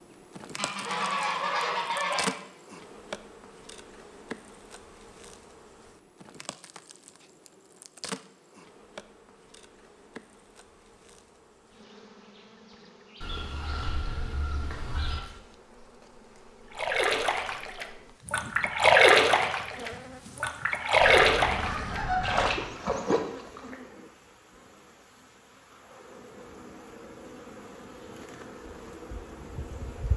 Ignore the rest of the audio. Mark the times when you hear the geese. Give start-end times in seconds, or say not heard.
0.6-2.4, 13.2-15.2, 21.0-22.6.